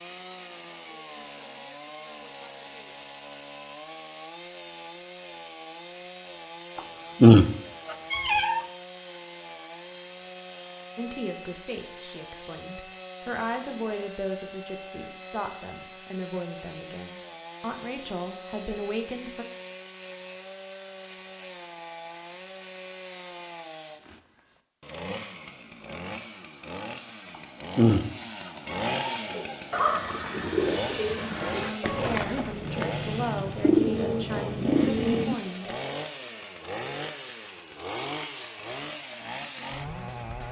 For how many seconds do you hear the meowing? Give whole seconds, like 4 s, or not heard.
3 s.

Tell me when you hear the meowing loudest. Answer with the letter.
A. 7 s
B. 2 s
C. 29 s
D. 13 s
A.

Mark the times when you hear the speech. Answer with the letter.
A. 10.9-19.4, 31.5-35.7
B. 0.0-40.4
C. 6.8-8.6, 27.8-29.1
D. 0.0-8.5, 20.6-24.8
A.